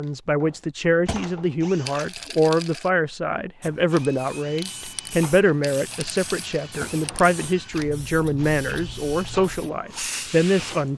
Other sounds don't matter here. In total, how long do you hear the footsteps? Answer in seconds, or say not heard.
not heard.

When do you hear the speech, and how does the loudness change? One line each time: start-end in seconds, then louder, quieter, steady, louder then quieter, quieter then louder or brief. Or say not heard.
0.0-10.9 steady.